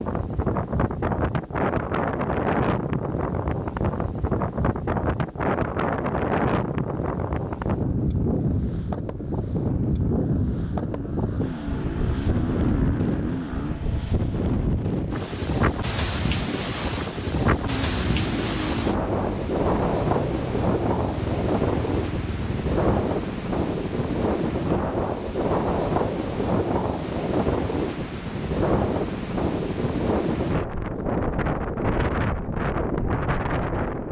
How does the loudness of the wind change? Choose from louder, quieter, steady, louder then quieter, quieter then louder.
steady.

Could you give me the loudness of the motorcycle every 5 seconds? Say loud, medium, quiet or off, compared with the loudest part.
off, quiet, loud, loud, loud, off, off.